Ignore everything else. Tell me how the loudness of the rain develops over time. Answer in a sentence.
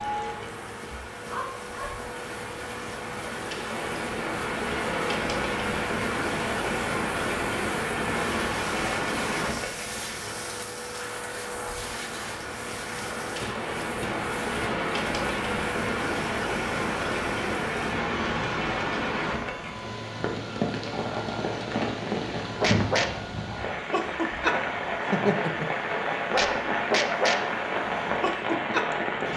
The volume of the rain stays about the same.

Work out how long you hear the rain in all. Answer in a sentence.
The rain can be heard for 29 seconds in total.